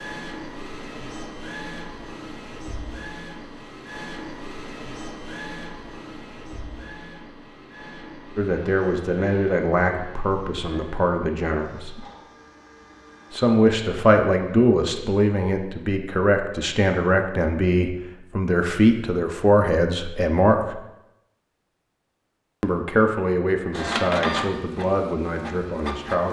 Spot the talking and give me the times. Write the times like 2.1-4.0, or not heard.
8.3-12.0, 13.3-20.8, 22.6-26.2.